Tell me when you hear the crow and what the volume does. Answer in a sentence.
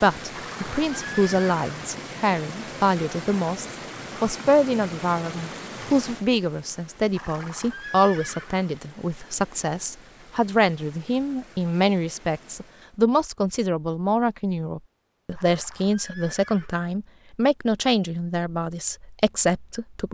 You can't hear the crow here.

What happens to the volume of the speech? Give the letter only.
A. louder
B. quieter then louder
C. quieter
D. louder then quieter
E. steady
E.